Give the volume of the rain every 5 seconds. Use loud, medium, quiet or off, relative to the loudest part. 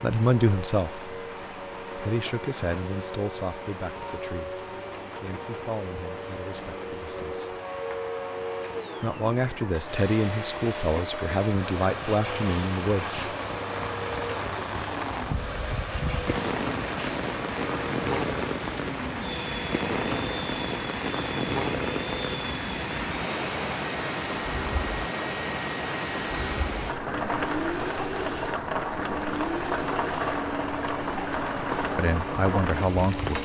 quiet, quiet, medium, loud, loud, loud, loud.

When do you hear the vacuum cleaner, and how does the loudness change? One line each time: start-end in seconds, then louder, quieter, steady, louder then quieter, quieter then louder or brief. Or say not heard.
0.0-33.4 steady.